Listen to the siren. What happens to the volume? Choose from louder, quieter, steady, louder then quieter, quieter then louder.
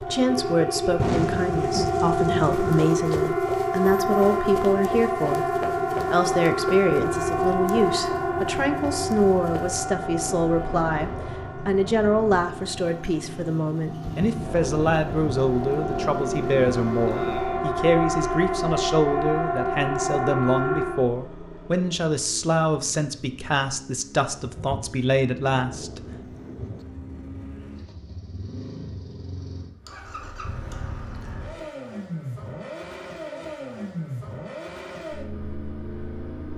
quieter then louder.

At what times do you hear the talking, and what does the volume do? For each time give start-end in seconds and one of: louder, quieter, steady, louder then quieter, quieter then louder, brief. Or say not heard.
0.1-26.0 steady.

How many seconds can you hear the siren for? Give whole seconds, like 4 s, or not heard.
21 s.